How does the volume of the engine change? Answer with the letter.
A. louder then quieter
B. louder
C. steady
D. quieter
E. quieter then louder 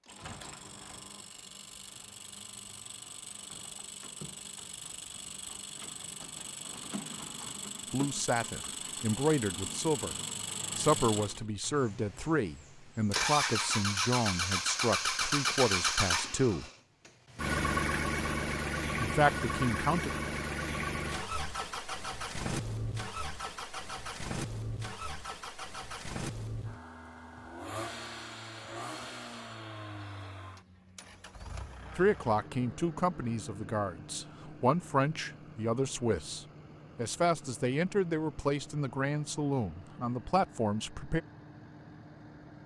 A.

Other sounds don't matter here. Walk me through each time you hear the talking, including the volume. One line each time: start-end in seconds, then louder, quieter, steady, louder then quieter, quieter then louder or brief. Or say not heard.
7.9-10.2 brief
10.8-16.6 steady
19.0-20.1 brief
31.9-41.2 steady.